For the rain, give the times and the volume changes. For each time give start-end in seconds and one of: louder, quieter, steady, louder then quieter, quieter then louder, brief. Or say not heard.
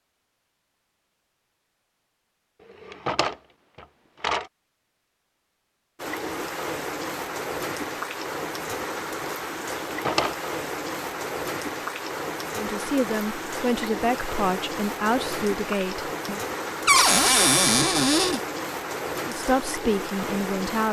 6.0-20.8 steady.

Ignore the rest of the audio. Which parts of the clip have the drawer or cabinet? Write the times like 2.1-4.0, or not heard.
2.8-4.5, 9.8-10.3, 16.9-18.4.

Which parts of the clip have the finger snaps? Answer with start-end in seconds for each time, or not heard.
not heard.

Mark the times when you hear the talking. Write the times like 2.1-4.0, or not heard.
12.6-16.4, 19.2-20.8.